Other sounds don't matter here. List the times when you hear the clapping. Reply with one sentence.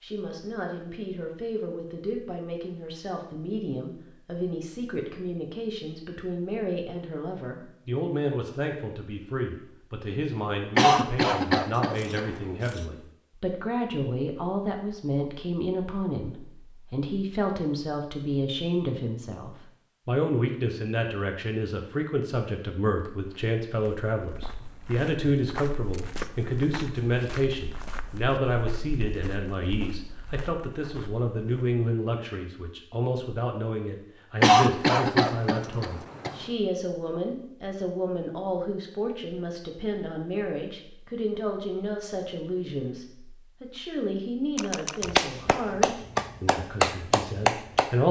The clapping can be heard from 45.0 to 48.0 s.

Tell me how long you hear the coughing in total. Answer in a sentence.
You can hear the coughing for 4 seconds altogether.